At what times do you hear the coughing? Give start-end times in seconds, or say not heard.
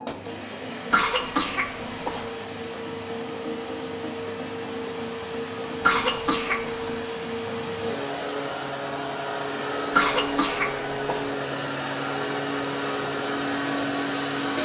0.9-2.3, 5.8-6.7, 9.9-11.3.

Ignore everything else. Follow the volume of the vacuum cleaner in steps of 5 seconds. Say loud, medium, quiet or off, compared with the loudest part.
medium, loud, loud.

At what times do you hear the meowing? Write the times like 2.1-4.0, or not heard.
not heard.